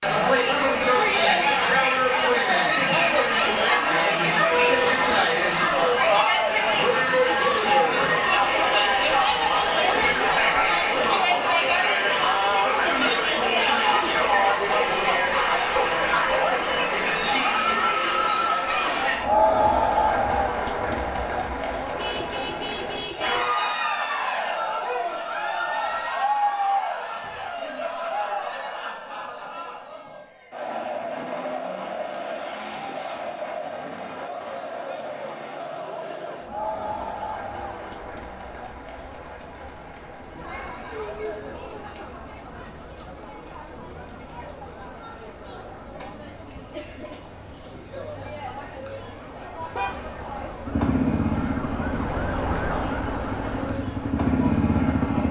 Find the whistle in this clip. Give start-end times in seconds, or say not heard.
not heard.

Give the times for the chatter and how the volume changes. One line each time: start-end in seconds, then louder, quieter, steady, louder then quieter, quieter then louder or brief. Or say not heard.
0.0-55.2 quieter.